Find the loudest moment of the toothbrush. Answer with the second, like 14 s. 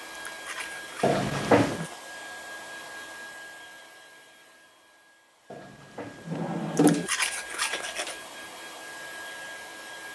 7 s.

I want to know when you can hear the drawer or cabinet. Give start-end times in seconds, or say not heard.
1.0-1.9, 5.5-7.1.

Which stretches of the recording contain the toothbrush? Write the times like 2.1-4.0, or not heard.
0.1-1.9, 6.8-8.2.